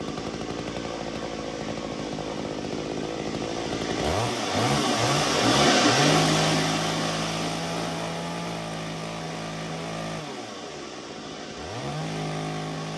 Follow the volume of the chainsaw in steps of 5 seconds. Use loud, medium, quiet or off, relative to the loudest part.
loud, loud, medium.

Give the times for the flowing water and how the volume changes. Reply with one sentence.
You can hear the flowing water from 0.0 to 12.9 s, getting louder then quieter.